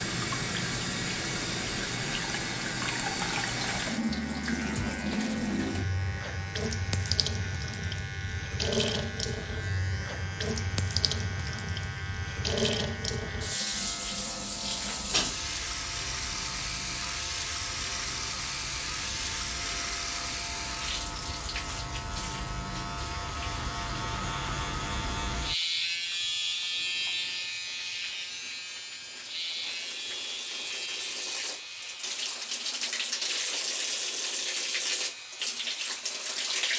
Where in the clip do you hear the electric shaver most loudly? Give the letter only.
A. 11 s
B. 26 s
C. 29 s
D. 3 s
B.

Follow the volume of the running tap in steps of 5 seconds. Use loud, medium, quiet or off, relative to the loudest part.
loud, loud, loud, loud, medium, quiet, loud, loud.